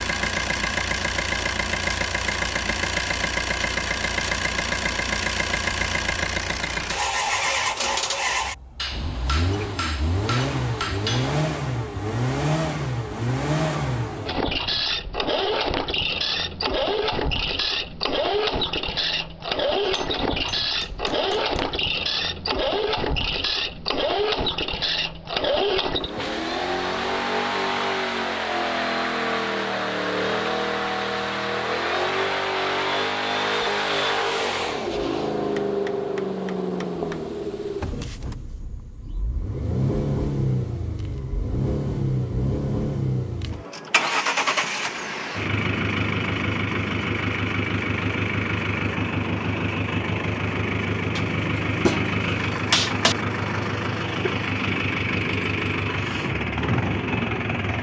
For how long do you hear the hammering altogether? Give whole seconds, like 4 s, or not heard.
8 s.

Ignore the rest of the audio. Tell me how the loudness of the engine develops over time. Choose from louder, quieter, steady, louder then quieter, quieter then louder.
steady.